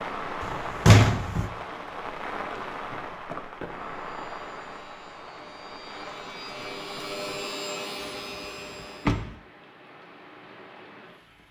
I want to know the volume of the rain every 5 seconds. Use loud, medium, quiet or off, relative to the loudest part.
loud, medium, quiet.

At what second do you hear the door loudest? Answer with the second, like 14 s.
1 s.